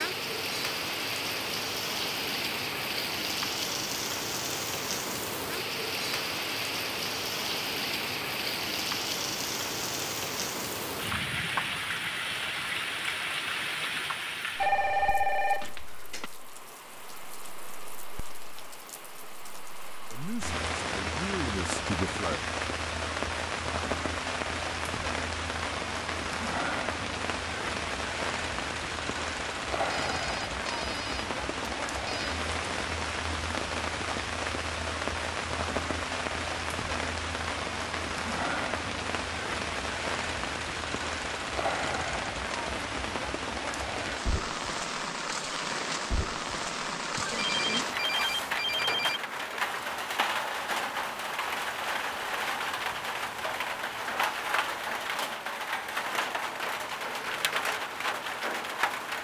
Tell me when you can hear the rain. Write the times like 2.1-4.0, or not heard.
0.0-59.1.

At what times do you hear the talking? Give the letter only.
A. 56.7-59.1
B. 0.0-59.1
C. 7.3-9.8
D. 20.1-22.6
D.